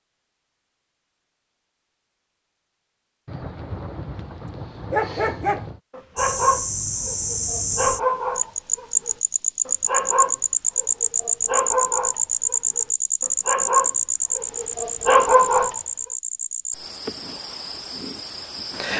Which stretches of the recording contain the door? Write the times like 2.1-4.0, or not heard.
not heard.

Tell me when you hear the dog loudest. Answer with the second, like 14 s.
15 s.